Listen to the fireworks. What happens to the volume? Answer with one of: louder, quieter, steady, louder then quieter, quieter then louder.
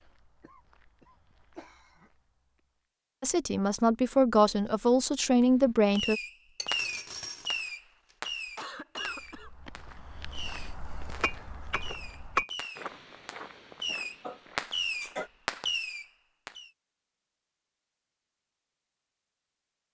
quieter then louder.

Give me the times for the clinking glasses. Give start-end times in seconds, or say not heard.
6.5-7.7, 11.2-12.5.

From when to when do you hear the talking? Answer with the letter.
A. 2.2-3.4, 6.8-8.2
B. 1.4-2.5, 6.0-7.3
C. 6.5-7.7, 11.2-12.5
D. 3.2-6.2
D.